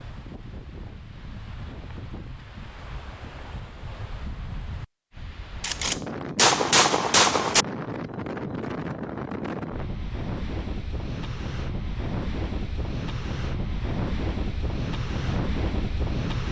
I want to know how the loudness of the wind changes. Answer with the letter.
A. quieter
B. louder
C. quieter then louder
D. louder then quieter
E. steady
B.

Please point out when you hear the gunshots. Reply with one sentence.
The gunshots can be heard from 5.6 to 7.7 s.